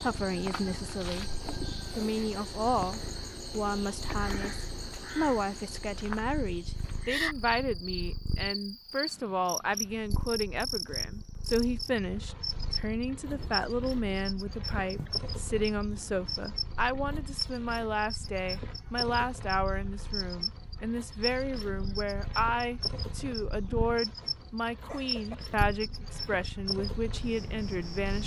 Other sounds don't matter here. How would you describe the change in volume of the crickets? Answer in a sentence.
The loudness of the crickets stays about the same.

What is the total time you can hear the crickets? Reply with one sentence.
You can hear the crickets for 28 seconds altogether.